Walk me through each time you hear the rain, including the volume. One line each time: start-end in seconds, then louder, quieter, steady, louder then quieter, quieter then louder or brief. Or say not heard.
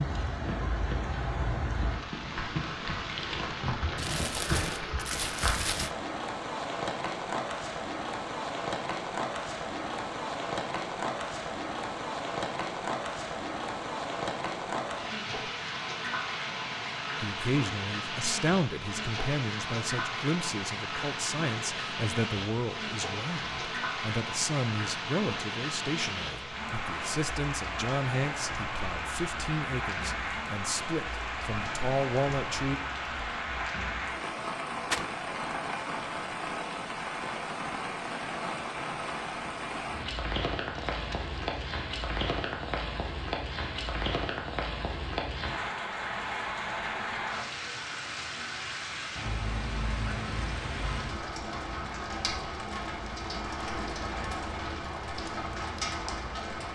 0.0-56.6 steady.